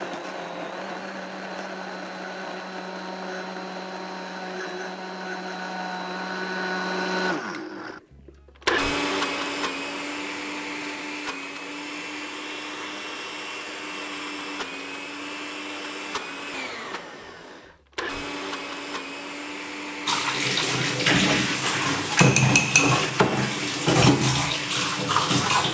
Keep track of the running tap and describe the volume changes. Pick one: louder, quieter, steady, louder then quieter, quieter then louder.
steady.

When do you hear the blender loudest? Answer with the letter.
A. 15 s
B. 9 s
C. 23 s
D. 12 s
B.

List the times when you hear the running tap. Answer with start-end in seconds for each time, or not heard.
20.1-25.6.